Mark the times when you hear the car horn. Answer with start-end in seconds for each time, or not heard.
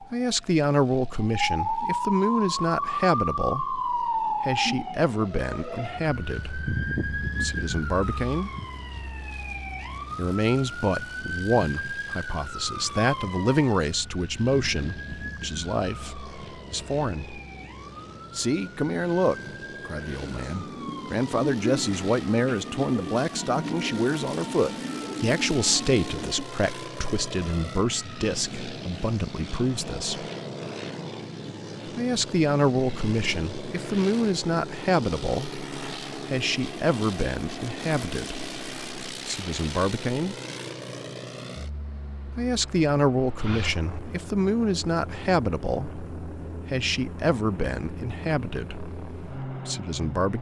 not heard.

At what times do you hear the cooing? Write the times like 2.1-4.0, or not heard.
20.2-26.4.